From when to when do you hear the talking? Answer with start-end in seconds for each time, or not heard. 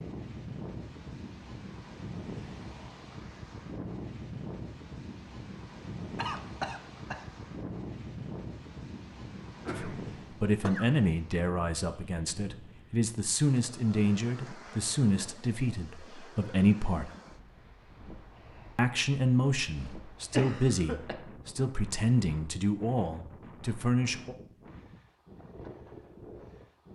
9.7-17.1, 18.8-24.4.